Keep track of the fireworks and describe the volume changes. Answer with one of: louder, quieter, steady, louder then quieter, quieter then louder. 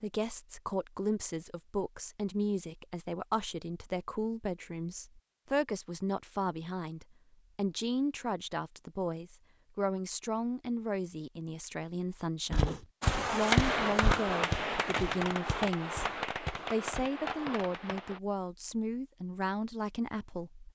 quieter.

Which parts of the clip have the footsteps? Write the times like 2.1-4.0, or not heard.
12.5-18.1.